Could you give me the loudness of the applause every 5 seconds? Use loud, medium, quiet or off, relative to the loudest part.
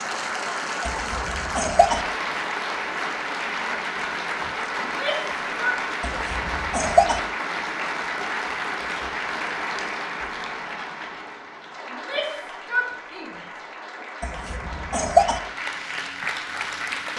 loud, loud, medium, loud.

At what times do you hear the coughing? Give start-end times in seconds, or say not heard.
0.8-2.0, 6.0-7.2, 14.2-15.4.